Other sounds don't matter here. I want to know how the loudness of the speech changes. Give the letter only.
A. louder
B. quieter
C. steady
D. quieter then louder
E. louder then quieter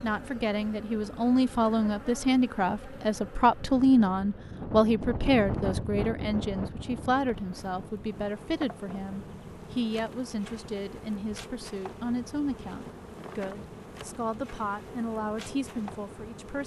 B.